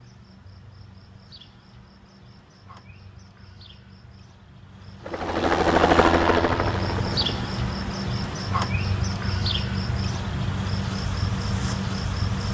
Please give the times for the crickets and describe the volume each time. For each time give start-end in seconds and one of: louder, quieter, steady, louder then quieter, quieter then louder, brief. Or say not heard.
0.0-12.5 louder.